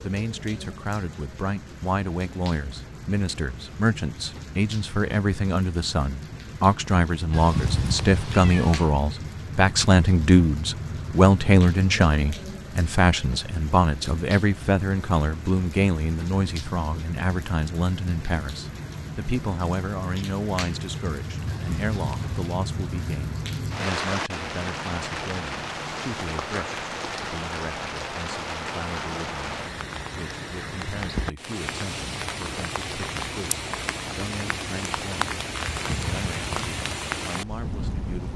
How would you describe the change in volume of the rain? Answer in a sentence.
The volume of the rain goes up.